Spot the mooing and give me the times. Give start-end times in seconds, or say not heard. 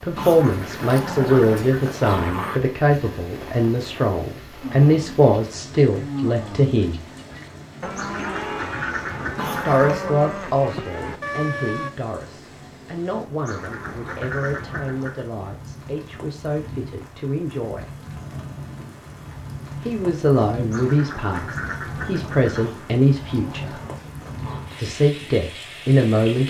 4.6-11.9.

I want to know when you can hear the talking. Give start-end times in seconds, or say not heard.
0.0-7.0, 9.7-17.8, 19.8-23.8, 24.8-26.4.